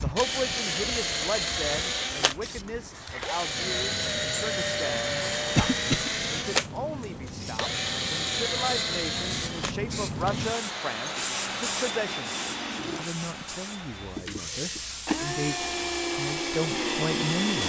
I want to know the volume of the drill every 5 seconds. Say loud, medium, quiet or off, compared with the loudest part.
loud, loud, medium, loud.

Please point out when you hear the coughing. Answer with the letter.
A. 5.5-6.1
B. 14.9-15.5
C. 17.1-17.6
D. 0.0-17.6
A.